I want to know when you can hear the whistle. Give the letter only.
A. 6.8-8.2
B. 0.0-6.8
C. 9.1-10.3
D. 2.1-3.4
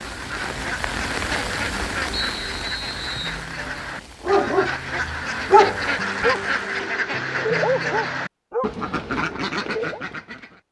D.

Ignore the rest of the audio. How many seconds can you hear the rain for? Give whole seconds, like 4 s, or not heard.
7 s.